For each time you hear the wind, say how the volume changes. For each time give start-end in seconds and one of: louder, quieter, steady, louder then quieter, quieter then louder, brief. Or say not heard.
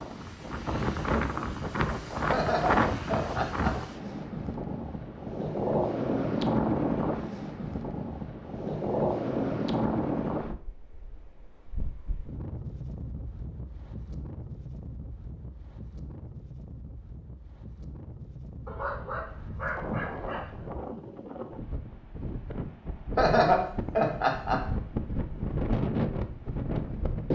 0.0-27.3 quieter then louder.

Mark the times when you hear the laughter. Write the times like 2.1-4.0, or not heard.
2.3-3.8, 23.1-24.7.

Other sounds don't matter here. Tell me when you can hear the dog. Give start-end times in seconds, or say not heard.
18.6-20.7.